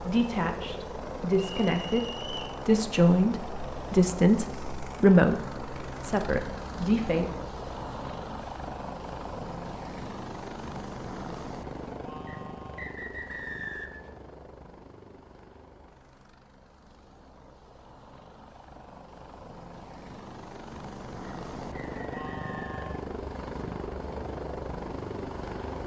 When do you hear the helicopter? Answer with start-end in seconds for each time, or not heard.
0.0-25.8.